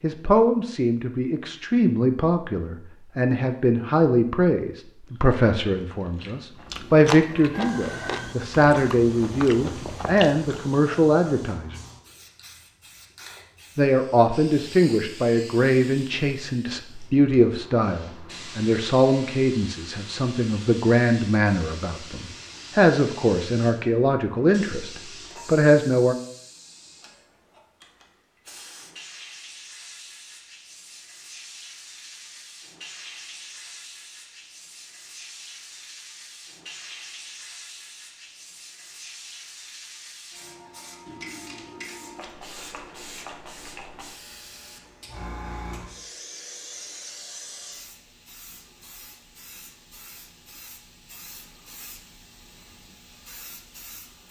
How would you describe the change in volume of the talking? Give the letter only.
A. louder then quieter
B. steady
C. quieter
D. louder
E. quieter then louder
B.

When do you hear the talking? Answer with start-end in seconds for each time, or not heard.
0.0-11.8, 13.8-26.1.